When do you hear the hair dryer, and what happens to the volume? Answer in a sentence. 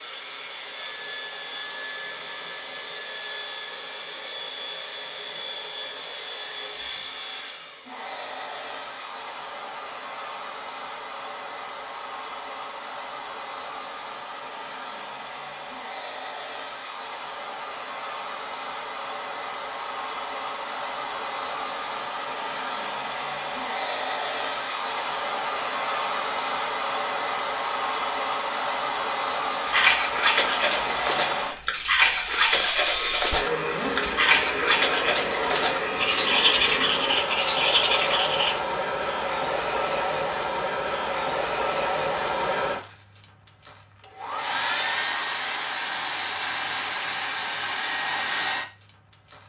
You can hear the hair dryer from 0.0 to 49.4 s, getting louder.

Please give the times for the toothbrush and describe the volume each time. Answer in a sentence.
You can hear the toothbrush from 29.6 to 38.5 s, at a steady volume.